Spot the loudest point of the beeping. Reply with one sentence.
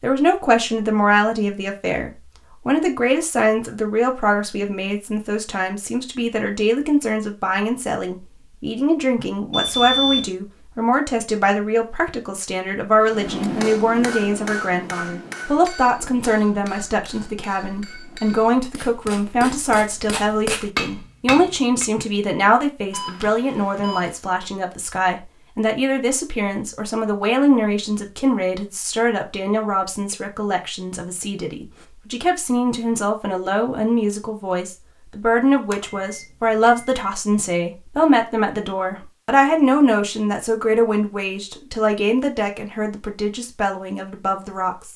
The loudest moment of the beeping is at 10 seconds.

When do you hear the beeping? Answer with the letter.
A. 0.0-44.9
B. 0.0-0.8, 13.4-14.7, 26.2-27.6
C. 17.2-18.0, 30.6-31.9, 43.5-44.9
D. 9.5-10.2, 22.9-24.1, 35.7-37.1
D.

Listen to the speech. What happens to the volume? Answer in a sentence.
The loudness of the speech stays about the same.